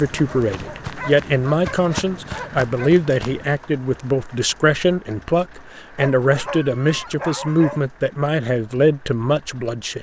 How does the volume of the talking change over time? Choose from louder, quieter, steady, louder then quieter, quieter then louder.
steady.